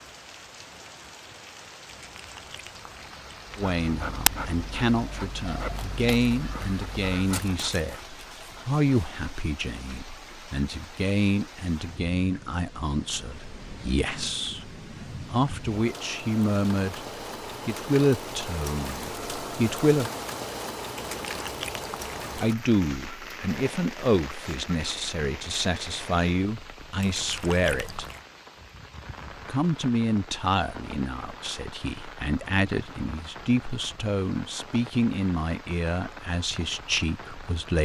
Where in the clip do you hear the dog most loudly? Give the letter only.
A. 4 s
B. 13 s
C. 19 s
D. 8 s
A.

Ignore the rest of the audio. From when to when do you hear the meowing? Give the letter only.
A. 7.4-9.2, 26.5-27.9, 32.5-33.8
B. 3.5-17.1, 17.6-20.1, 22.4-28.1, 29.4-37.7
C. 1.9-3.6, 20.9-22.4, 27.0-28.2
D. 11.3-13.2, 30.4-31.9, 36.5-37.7
C.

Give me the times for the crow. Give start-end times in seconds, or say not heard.
not heard.